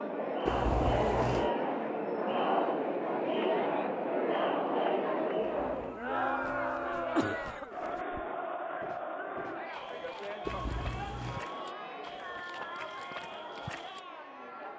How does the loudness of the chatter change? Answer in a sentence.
The loudness of the chatter goes down.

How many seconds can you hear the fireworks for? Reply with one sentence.
You can't hear the fireworks here.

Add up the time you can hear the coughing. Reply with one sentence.
You can hear the coughing for 4 seconds altogether.